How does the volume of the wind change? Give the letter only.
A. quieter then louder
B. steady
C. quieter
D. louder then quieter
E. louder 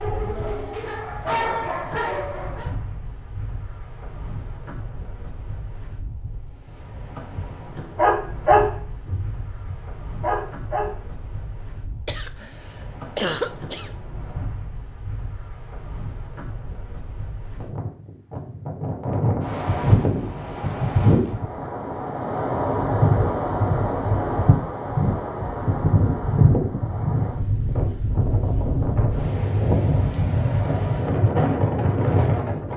E.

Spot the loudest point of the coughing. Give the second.
13 s.